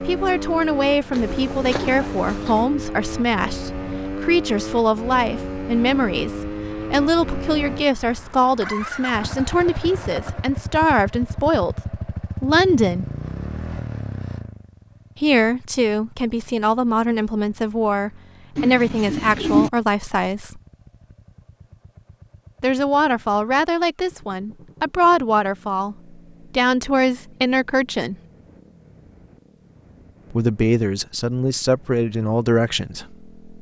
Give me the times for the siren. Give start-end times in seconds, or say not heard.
not heard.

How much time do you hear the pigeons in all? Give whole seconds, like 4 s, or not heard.
3 s.